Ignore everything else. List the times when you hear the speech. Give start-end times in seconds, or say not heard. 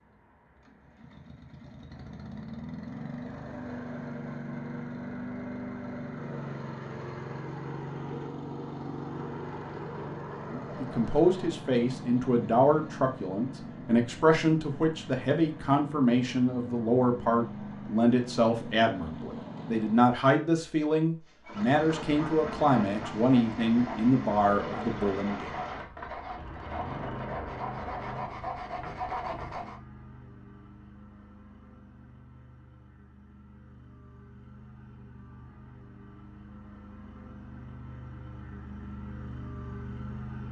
10.5-25.5.